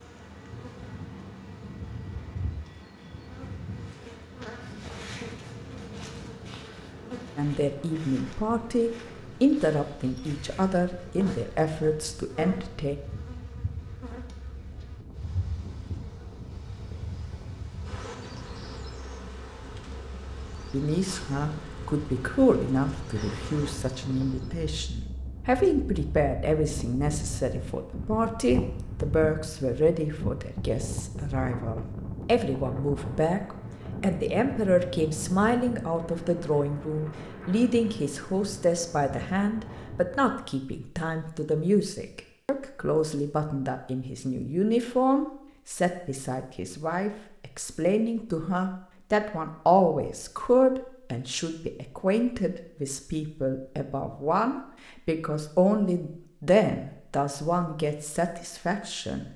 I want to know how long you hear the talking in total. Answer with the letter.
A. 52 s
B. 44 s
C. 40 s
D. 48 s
B.